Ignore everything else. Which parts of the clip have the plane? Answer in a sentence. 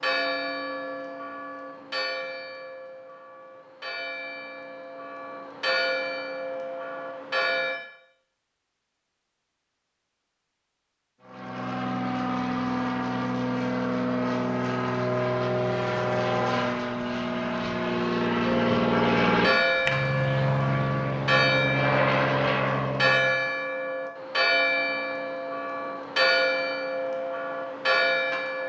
You can hear the plane from 11.2 to 23.4 s.